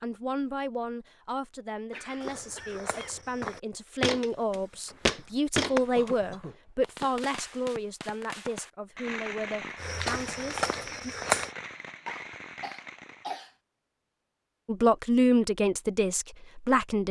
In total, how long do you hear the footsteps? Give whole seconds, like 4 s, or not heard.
6 s.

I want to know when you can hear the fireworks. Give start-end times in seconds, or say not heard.
4.8-13.3.